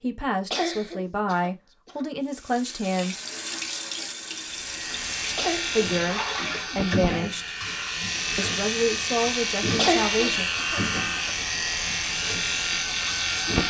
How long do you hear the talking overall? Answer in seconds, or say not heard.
7 s.